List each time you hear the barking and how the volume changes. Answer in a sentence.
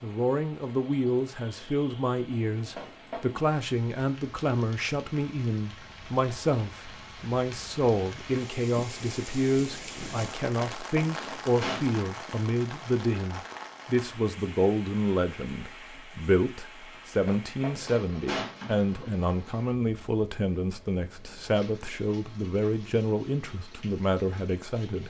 The barking can't be heard in this clip.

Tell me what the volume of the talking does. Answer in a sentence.
The loudness of the talking stays about the same.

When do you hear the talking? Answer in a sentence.
You can hear the talking from 0.0 to 25.0 s.